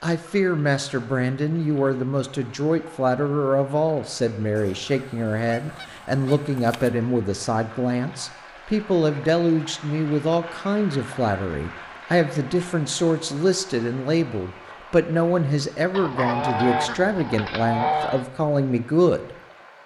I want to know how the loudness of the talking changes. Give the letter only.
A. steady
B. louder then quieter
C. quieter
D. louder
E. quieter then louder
A.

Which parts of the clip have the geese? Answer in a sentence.
You can hear the geese from 4.5 to 6.9 s and from 15.9 to 18.2 s.